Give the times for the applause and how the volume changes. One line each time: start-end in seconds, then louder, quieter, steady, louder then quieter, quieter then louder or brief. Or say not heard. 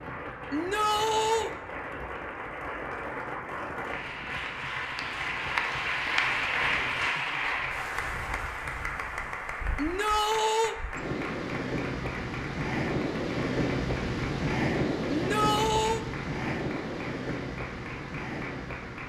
0.0-19.0 louder then quieter.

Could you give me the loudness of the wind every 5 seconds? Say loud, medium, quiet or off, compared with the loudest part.
quiet, quiet, loud, loud.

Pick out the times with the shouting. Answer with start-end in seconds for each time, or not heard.
0.5-1.5, 9.8-10.8, 15.1-16.0.